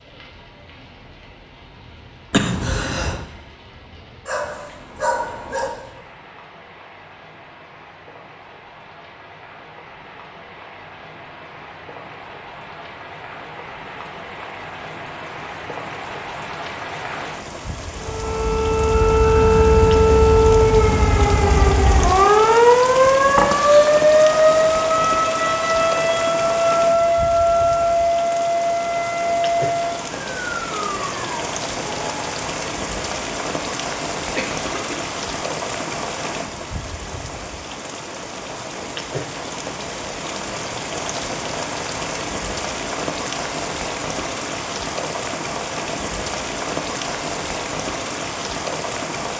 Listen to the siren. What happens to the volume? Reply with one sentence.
The loudness of the siren goes down.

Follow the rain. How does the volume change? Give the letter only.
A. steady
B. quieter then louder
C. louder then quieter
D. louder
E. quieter
D.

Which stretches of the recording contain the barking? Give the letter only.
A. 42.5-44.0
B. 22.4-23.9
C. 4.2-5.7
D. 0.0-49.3
C.